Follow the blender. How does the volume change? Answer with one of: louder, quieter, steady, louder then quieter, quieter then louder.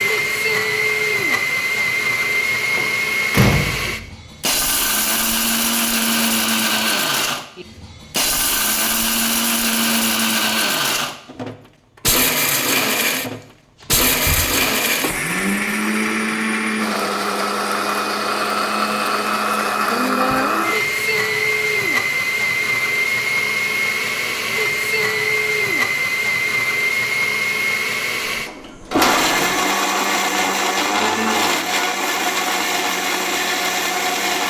steady.